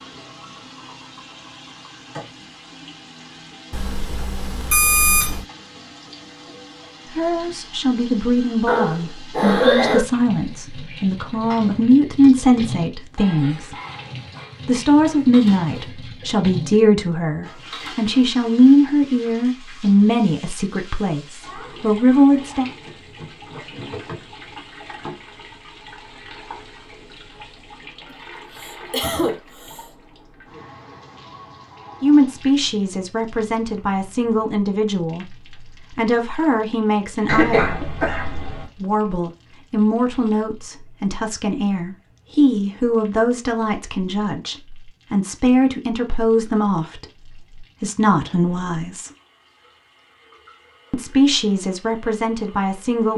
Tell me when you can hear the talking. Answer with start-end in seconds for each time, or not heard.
7.2-13.8, 14.7-22.7, 32.0-35.2, 36.0-37.8, 38.8-49.1, 50.9-53.1.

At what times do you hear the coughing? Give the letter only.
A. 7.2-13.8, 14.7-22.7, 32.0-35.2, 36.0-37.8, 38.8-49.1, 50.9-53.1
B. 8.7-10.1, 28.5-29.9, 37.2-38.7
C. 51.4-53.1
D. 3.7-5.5
B.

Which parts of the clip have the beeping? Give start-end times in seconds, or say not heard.
3.7-5.5.